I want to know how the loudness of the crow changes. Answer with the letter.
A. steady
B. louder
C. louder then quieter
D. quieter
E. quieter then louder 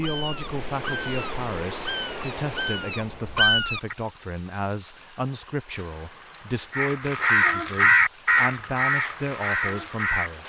C.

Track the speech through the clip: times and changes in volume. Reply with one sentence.
You can hear the speech from 0.0 to 10.4 s, at a steady volume.